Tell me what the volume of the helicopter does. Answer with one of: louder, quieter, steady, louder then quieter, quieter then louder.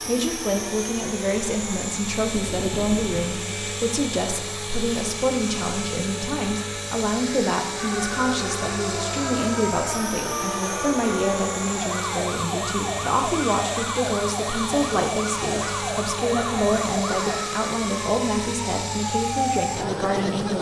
steady.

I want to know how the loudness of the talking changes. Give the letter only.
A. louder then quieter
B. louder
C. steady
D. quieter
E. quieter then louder
C.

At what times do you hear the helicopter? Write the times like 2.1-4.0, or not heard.
0.0-20.5.